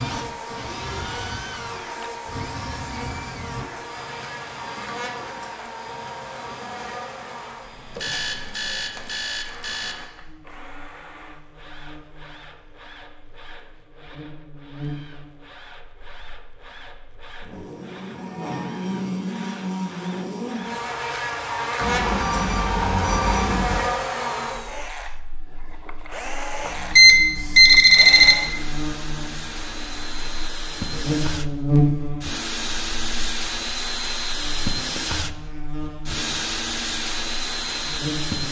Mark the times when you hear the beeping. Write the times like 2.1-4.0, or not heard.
8.0-9.9, 21.8-23.8, 26.6-28.4.